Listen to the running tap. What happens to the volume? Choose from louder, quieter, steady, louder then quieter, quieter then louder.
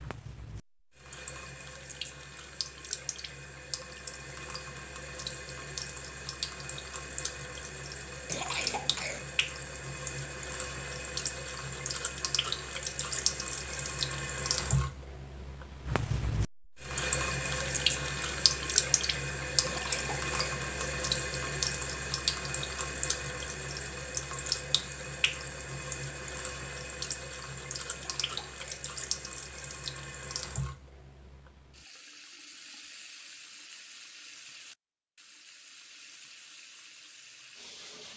louder then quieter.